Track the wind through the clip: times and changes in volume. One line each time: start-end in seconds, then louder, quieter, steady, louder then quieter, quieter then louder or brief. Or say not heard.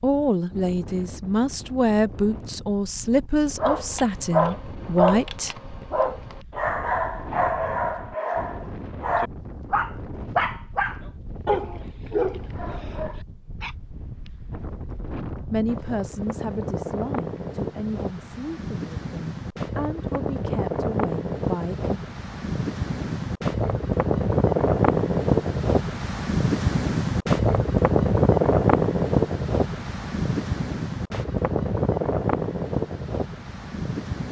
0.0-34.2 louder.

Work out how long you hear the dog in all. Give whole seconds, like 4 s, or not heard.
10 s.